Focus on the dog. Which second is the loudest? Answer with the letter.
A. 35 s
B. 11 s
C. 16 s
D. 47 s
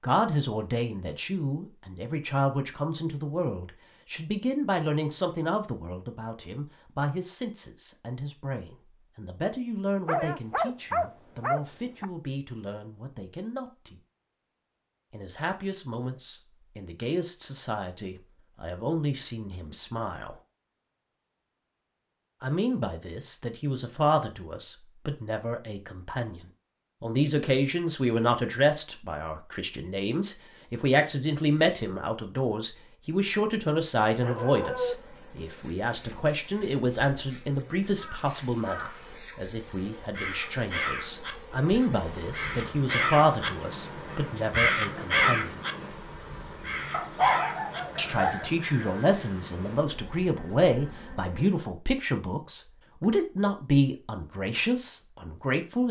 D.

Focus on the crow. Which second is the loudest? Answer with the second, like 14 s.
45 s.